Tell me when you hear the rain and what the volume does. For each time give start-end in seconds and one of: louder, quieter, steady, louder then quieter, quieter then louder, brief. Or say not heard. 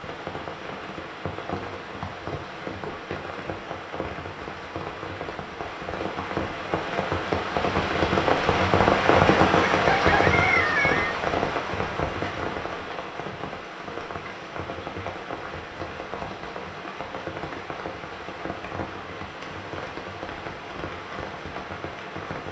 0.0-22.4 louder then quieter.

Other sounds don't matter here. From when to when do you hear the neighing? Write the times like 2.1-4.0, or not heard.
not heard.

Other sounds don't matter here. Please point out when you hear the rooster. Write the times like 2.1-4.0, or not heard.
9.8-11.2.